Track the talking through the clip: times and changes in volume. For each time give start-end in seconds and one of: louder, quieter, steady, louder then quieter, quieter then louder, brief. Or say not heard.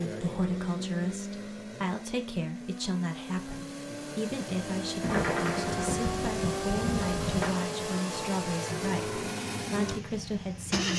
0.0-10.9 steady.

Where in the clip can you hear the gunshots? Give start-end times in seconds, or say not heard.
5.0-7.5.